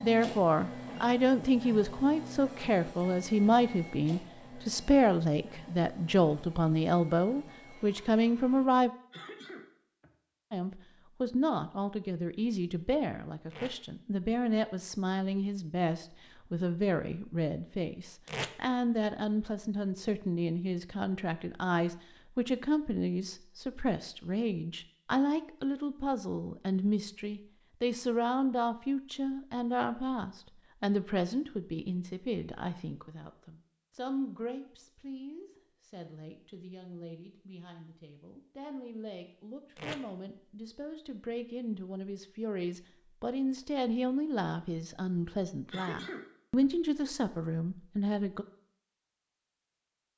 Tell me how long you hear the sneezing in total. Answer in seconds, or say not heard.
2 s.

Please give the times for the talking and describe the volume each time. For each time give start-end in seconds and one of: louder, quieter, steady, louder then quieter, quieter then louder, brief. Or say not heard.
0.0-8.9 steady
10.5-48.5 quieter then louder.